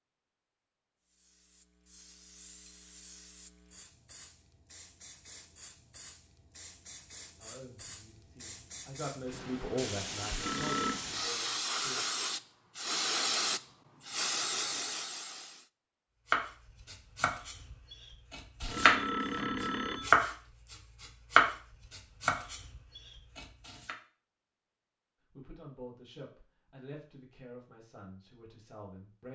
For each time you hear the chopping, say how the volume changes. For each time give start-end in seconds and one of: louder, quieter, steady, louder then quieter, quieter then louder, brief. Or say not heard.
16.3-23.9 louder then quieter.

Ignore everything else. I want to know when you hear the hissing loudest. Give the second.
13 s.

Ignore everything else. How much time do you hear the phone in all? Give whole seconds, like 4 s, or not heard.
2 s.